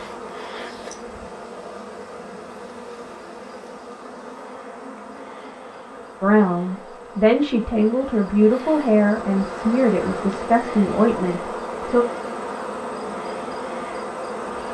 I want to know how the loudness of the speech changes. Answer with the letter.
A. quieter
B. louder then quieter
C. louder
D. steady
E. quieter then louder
D.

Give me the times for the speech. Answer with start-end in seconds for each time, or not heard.
6.2-12.1.